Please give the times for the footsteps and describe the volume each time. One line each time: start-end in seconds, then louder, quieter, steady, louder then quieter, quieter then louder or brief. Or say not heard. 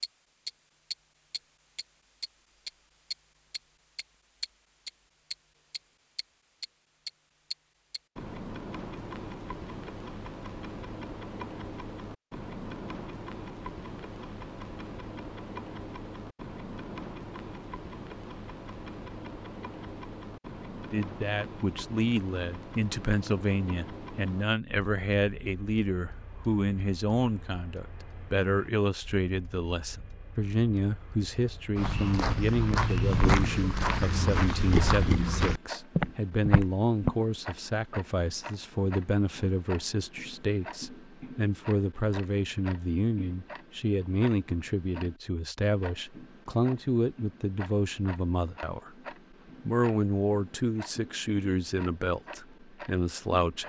31.8-37.1 steady.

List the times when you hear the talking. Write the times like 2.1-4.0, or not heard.
20.9-49.0, 49.6-53.6.